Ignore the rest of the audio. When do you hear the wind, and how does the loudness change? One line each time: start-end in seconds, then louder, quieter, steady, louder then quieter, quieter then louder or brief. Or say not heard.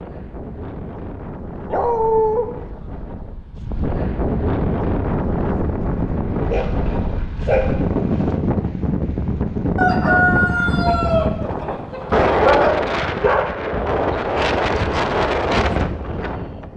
0.0-16.7 louder.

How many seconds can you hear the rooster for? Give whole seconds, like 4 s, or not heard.
3 s.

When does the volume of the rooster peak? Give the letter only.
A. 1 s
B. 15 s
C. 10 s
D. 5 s
C.